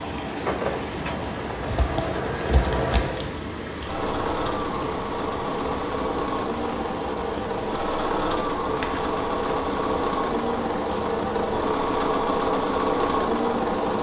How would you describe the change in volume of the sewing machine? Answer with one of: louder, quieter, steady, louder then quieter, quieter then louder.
louder.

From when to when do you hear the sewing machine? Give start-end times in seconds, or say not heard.
0.2-13.9.